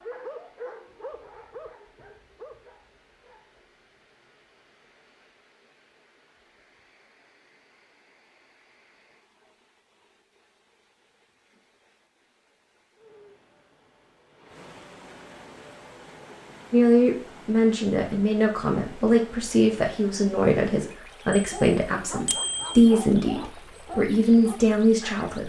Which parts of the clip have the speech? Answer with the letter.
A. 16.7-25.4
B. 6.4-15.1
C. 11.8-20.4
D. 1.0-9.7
A.